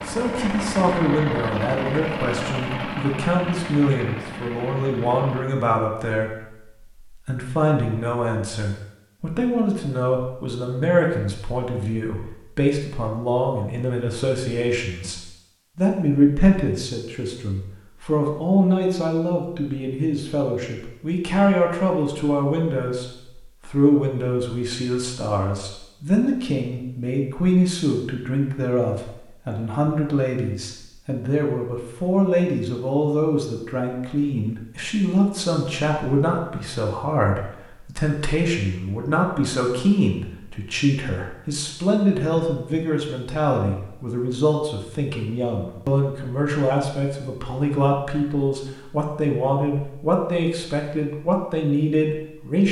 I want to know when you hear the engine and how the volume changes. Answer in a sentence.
You can hear the engine from 0.0 to 5.5 s, getting quieter.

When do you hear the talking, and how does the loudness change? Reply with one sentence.
The talking can be heard from 0.1 to 52.6 s, at a steady volume.